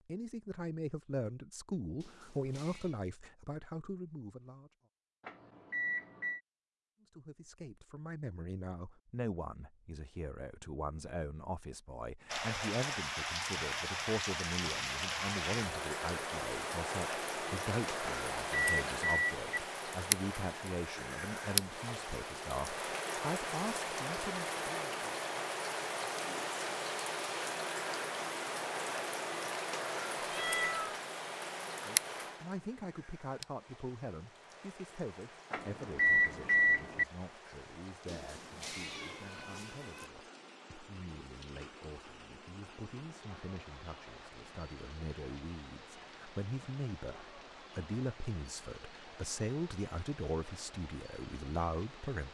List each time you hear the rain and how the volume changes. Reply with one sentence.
The rain can be heard from 12.2 to 52.2 s, getting quieter.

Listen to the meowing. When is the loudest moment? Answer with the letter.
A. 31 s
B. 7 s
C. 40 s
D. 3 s
A.